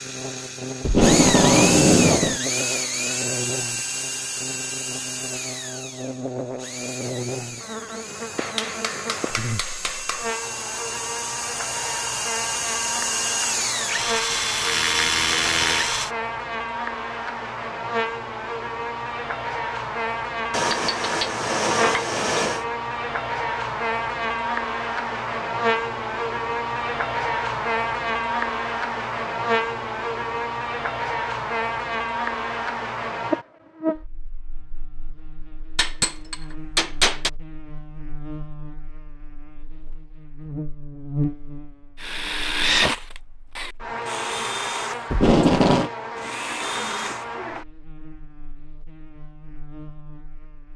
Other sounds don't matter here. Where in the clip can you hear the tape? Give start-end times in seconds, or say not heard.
0.8-2.4, 45.1-45.9.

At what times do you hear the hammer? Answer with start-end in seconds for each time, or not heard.
8.3-10.2, 20.5-22.6, 35.8-37.3.